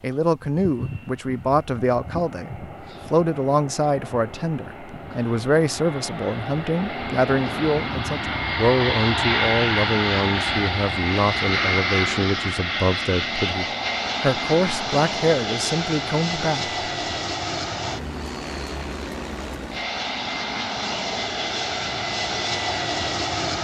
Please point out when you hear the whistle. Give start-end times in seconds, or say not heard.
not heard.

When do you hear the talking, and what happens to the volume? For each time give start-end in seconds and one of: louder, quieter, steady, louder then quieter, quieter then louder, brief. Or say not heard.
0.0-16.7 steady.